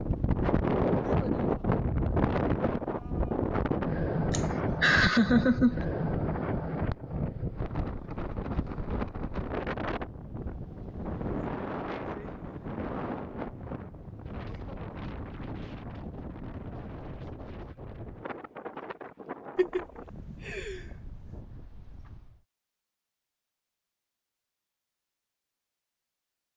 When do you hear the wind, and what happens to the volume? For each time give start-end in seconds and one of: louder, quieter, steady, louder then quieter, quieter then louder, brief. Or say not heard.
0.0-22.4 quieter.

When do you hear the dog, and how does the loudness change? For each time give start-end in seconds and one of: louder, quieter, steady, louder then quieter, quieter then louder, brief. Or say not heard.
not heard.